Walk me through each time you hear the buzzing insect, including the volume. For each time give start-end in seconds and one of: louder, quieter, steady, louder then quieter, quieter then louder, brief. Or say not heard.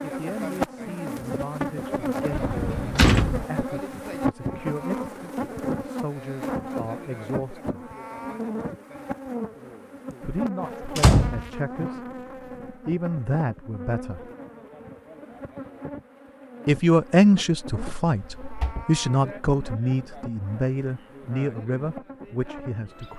0.0-23.1 quieter.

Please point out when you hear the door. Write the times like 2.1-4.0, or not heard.
2.3-3.5, 10.9-11.9, 18.1-18.9.